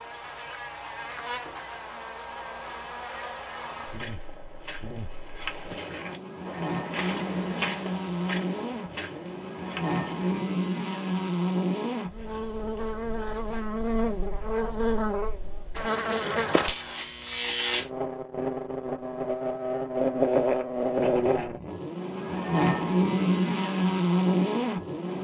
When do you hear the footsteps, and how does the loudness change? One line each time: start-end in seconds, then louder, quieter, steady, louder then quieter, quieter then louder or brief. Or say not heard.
3.7-10.4 louder then quieter.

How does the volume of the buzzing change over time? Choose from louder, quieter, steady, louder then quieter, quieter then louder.
louder.